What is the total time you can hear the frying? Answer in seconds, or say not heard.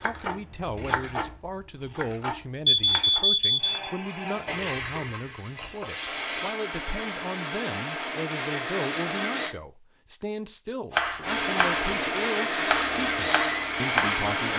2 s.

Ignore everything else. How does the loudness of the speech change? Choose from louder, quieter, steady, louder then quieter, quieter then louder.
steady.